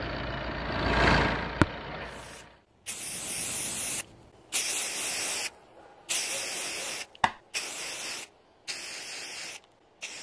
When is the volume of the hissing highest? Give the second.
5 s.